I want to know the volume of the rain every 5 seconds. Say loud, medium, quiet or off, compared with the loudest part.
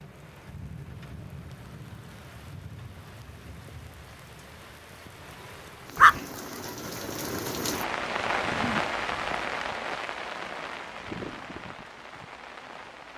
quiet, loud, medium.